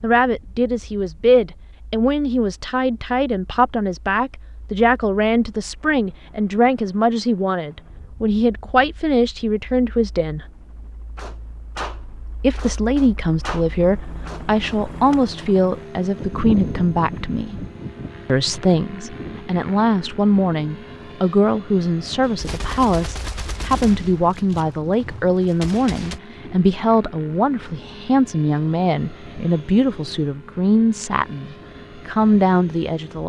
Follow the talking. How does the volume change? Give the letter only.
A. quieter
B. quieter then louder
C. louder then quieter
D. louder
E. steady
E.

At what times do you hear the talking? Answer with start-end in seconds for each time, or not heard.
0.0-10.4, 12.4-17.6, 18.2-33.2.